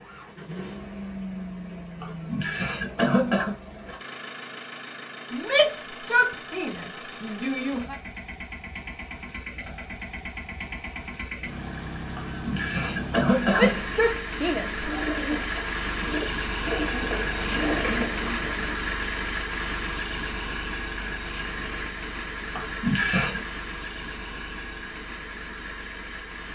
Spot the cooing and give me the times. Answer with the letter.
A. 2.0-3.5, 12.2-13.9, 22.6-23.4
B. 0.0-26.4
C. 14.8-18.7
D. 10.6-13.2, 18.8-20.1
C.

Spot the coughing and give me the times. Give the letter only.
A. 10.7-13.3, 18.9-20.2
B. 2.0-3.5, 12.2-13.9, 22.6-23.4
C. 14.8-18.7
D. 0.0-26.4
B.